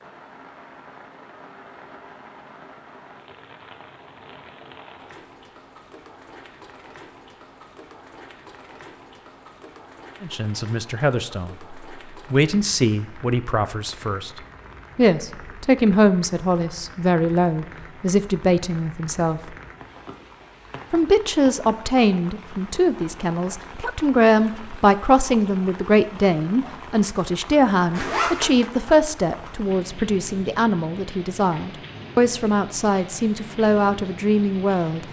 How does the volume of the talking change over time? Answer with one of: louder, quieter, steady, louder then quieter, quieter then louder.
steady.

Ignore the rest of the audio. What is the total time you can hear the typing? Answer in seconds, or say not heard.
not heard.